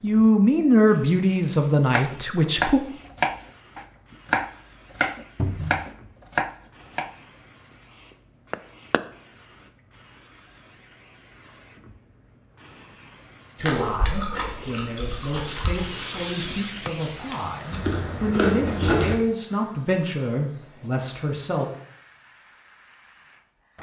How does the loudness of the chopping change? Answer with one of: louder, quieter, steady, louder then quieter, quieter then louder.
quieter.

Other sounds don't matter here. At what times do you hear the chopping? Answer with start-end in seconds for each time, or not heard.
1.9-9.1.